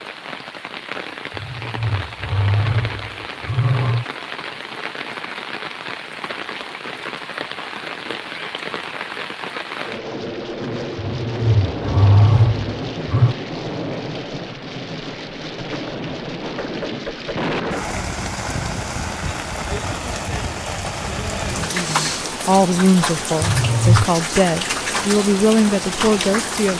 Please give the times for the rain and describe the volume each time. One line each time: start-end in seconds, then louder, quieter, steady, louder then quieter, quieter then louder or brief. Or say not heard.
0.0-26.7 louder.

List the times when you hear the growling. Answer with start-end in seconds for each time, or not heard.
1.3-4.0, 10.9-13.3, 23.4-24.1.